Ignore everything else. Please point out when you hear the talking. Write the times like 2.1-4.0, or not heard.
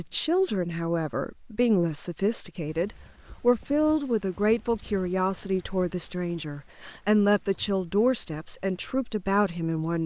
0.0-10.0.